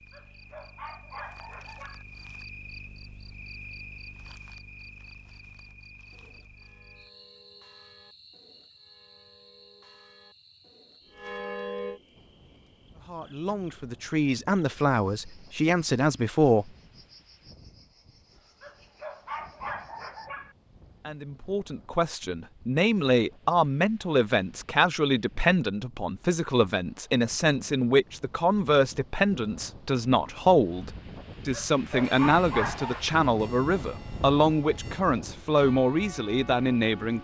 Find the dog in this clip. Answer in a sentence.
The dog can be heard from 0.1 to 2.0 s, from 18.6 to 20.6 s and from 31.5 to 33.0 s.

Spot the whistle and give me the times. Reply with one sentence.
The whistle can't be heard in this clip.